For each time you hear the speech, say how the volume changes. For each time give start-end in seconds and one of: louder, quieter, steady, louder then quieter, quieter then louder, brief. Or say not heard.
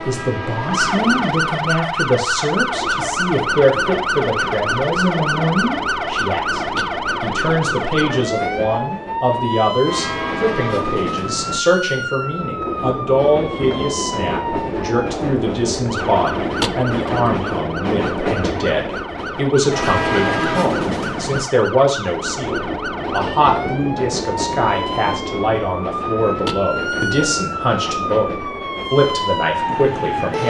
0.1-30.4 steady.